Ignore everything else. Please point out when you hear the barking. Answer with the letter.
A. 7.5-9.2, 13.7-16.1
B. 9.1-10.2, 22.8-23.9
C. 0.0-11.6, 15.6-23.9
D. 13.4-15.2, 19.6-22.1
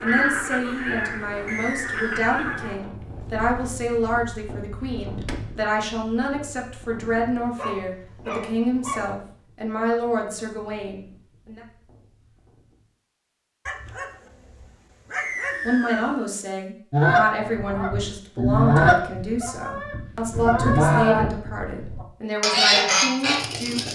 A.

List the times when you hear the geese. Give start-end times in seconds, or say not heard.
0.0-5.4, 16.9-23.9.